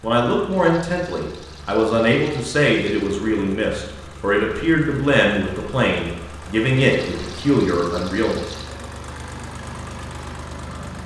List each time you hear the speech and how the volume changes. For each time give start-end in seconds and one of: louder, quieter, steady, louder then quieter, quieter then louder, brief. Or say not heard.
0.0-8.4 steady.